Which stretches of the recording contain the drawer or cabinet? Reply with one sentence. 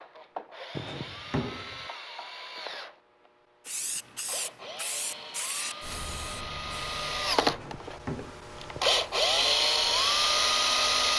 The drawer or cabinet can be heard from 0.8 to 1.9 s and from 7.5 to 9.0 s.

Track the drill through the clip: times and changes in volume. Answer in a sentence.
You can hear the drill from 0.0 to 11.1 s, getting louder.